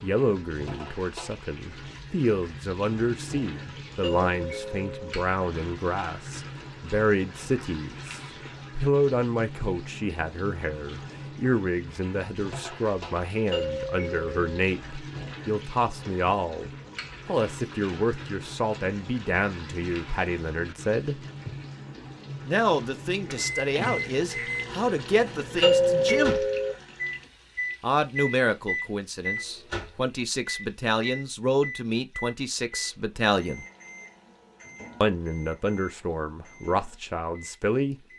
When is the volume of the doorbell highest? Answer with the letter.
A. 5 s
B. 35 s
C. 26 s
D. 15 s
C.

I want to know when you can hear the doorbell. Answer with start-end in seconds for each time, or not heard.
4.0-5.2, 13.5-14.4, 25.6-26.8.